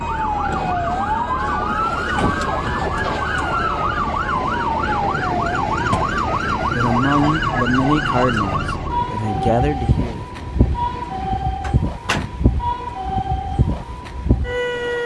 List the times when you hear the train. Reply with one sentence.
The train can be heard from 0.0 to 15.0 s.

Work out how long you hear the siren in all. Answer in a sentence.
You can hear the siren for 15 seconds altogether.